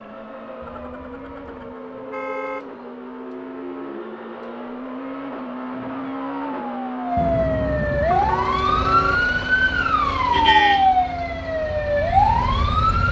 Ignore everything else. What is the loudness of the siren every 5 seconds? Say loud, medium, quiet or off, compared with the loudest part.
quiet, loud, loud.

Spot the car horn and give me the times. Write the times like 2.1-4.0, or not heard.
0.6-2.6, 7.2-9.2.